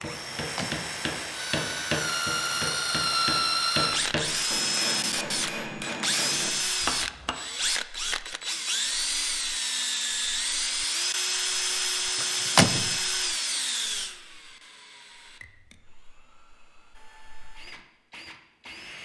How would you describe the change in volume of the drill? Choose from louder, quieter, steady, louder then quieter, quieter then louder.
quieter.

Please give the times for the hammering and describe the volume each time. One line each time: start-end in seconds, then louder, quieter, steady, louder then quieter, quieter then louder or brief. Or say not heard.
0.0-7.3 steady.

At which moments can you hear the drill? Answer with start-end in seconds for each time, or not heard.
0.0-18.9.